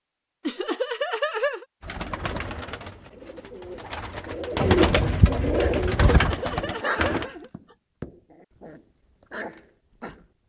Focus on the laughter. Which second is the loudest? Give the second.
1 s.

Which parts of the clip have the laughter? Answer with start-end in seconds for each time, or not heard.
0.5-1.6, 6.1-7.8.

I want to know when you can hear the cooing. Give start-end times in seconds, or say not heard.
1.8-7.2.